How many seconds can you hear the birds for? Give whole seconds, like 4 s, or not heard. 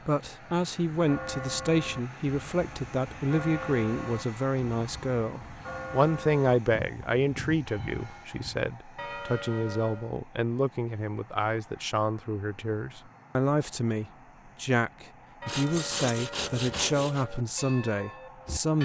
not heard.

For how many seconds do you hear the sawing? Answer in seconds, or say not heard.
2 s.